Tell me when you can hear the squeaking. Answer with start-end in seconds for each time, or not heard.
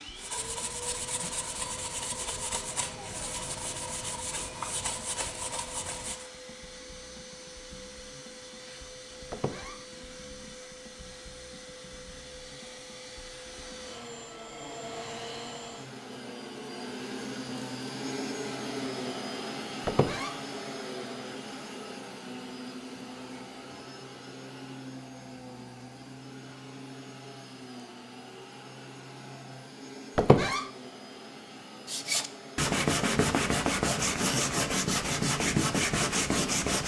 9.3-9.8, 19.9-20.4, 30.1-30.6.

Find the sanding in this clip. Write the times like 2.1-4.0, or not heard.
0.1-6.3, 31.9-36.8.